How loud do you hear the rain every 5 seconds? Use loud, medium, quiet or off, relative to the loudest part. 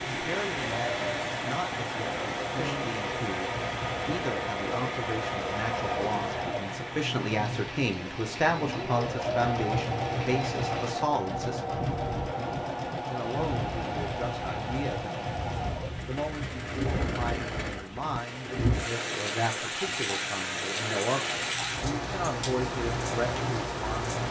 loud, medium, medium, loud, loud.